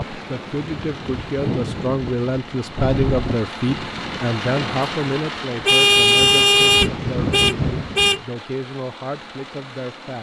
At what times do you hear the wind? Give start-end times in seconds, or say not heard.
0.0-8.2.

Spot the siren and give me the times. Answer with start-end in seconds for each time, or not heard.
not heard.